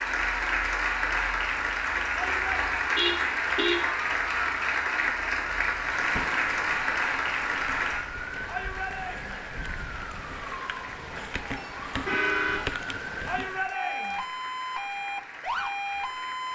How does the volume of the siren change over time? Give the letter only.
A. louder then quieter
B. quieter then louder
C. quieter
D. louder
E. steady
D.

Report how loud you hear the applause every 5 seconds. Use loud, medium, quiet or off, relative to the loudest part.
loud, loud, quiet, quiet.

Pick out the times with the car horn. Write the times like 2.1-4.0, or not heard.
2.9-3.8, 11.6-12.7.